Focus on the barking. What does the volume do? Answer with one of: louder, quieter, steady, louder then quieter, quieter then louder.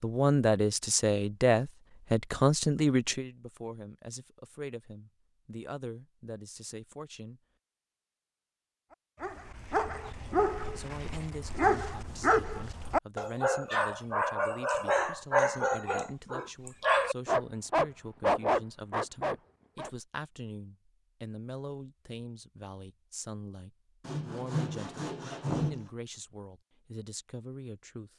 louder.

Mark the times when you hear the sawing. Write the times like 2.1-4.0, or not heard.
24.1-25.9.